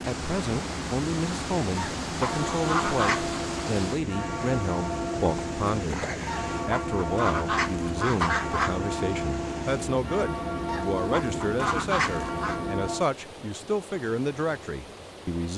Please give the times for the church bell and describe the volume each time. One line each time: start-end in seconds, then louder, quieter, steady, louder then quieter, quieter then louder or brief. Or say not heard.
2.2-13.1 steady.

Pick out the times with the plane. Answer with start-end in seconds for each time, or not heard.
0.0-13.1.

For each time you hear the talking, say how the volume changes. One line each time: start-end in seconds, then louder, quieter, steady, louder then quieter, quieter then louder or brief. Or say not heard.
0.1-6.0 steady
6.7-15.5 steady.